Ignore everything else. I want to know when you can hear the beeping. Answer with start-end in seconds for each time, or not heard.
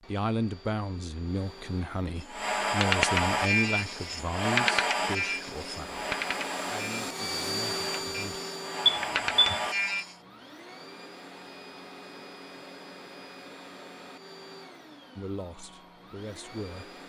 8.8-9.6.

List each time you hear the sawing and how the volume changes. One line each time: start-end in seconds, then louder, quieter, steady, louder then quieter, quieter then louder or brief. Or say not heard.
2.1-10.2 quieter then louder.